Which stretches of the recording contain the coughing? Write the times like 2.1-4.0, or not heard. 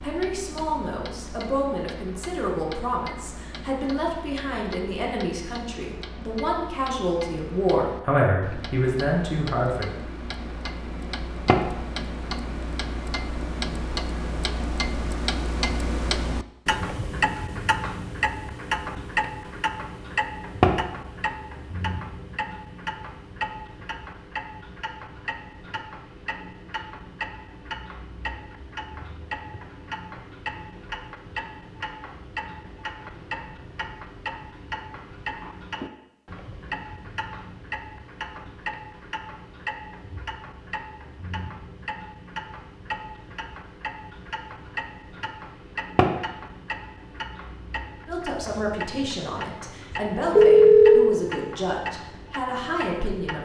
not heard.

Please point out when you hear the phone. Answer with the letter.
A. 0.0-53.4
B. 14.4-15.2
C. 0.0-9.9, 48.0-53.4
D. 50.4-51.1
D.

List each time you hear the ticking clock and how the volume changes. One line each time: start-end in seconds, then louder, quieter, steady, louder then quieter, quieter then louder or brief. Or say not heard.
0.0-53.4 louder then quieter.